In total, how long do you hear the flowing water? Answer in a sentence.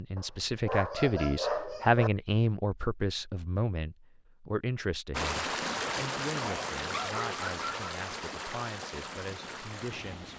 You can hear the flowing water for 5 seconds altogether.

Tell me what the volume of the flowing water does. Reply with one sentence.
The volume of the flowing water goes down.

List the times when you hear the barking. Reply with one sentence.
The barking can be heard from 0.1 to 2.1 s and from 6.4 to 7.8 s.